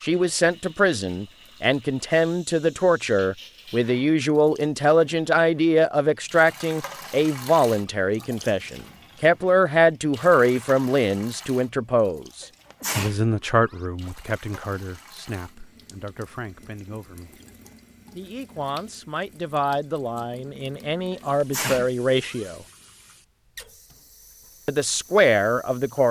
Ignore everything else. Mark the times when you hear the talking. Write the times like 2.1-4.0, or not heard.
0.0-17.4, 18.1-22.6, 24.6-26.0.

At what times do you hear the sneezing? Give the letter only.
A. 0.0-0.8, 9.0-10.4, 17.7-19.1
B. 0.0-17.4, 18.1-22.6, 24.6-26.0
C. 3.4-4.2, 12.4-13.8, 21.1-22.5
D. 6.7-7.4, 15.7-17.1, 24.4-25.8
C.